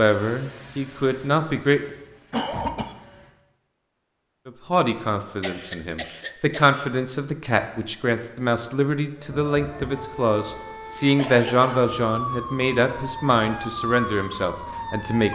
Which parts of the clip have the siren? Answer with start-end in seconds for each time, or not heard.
9.2-15.3.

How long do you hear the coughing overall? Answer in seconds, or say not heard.
3 s.